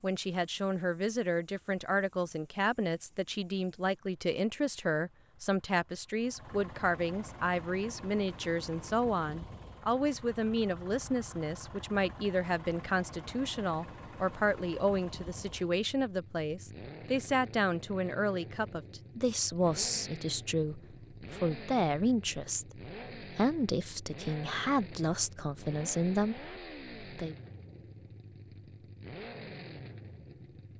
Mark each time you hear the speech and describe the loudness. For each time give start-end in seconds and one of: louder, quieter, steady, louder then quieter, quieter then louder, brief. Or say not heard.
0.0-27.4 steady.